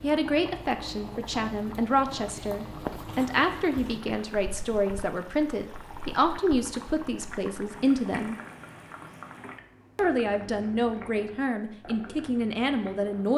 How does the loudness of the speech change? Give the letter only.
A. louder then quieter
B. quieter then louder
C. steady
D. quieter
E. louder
C.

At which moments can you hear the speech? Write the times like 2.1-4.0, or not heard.
0.0-8.3, 9.9-13.3.